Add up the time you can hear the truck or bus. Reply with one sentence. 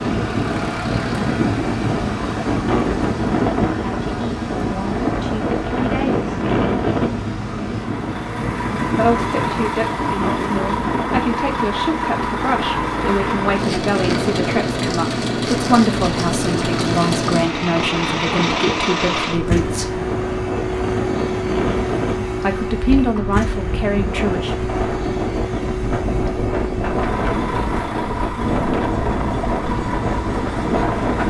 You can hear the truck or bus for 31 seconds altogether.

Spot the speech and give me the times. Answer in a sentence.
You can hear the speech from 3.6 to 6.2 s, from 8.9 to 20.0 s and from 22.4 to 24.6 s.